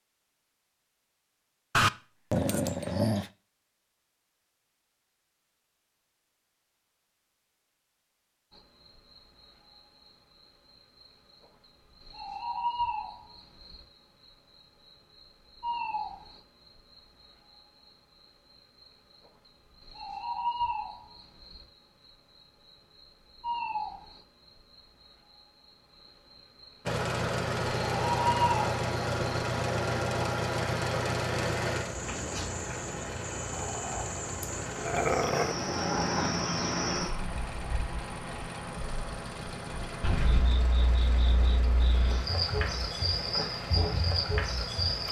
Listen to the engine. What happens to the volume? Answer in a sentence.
The loudness of the engine goes down.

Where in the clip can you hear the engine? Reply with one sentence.
The engine can be heard from 26.9 to 45.0 s.